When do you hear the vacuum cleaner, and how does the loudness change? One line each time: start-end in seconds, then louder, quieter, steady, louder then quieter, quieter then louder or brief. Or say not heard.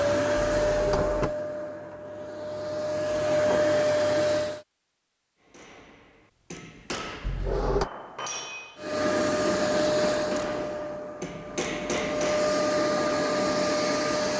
0.0-4.7 quieter then louder
8.8-14.3 quieter then louder.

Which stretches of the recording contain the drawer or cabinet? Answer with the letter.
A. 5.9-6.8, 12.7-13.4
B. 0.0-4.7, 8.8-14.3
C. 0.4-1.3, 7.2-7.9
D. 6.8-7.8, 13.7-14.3
C.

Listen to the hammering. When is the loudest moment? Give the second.
12 s.